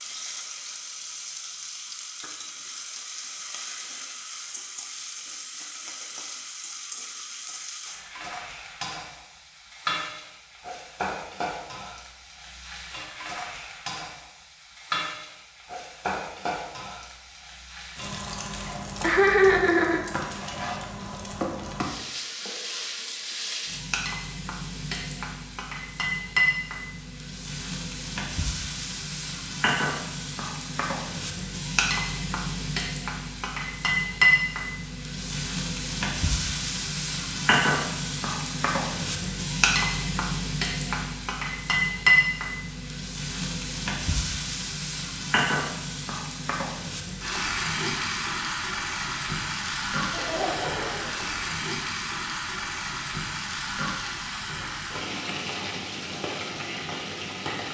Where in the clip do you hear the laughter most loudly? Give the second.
19 s.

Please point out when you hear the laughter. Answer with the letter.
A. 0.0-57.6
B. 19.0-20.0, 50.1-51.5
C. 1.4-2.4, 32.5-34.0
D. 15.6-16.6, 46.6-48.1
B.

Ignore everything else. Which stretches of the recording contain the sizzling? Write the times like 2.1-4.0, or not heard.
0.0-57.6.